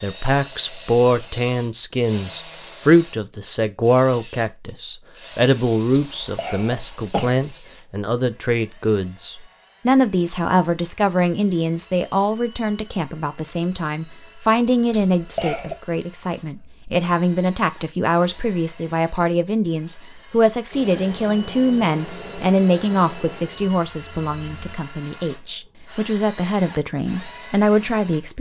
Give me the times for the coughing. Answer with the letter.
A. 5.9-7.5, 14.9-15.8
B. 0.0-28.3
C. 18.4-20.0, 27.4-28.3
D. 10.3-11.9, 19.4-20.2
A.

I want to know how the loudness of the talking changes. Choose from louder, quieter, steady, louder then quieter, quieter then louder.
steady.